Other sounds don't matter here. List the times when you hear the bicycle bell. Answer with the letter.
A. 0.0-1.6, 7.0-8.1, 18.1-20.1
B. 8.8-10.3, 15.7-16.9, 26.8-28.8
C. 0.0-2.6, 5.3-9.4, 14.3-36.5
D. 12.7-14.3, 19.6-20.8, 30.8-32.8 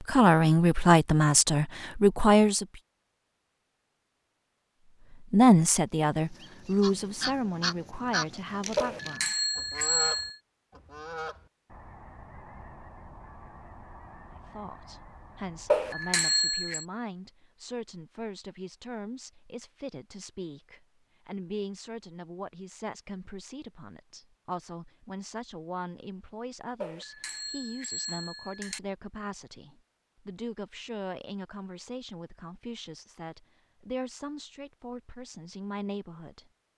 B.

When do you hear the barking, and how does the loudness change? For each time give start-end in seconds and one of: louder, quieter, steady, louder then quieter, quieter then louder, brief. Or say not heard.
not heard.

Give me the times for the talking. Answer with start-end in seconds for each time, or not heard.
0.0-2.6, 5.3-9.4, 14.3-36.5.